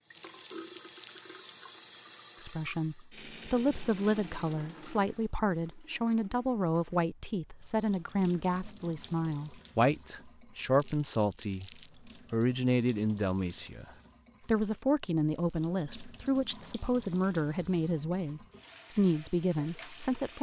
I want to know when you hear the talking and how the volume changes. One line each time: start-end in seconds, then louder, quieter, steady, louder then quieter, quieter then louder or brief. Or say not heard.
2.4-20.3 steady.